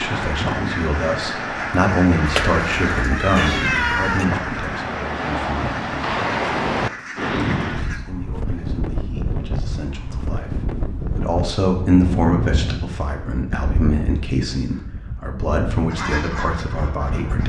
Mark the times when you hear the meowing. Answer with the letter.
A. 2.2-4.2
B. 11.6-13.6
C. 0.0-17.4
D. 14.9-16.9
A.